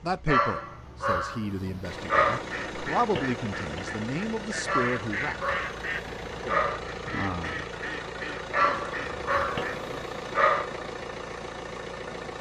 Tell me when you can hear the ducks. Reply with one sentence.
You can hear the ducks from 2.4 to 9.8 s.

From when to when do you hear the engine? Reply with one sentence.
You can hear the engine from 0.0 to 12.3 s.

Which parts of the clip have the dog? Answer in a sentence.
You can hear the dog from 0.2 to 2.4 s, from 4.7 to 6.8 s and from 8.5 to 10.7 s.